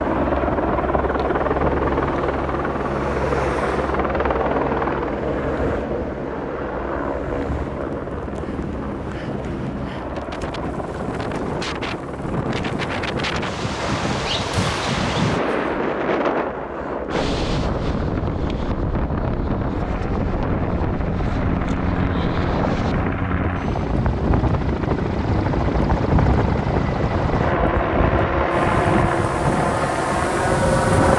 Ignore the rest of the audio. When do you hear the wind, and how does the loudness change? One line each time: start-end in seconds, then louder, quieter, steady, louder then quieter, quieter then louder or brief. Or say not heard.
0.0-31.1 louder.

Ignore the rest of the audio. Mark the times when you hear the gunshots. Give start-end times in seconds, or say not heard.
13.8-15.8.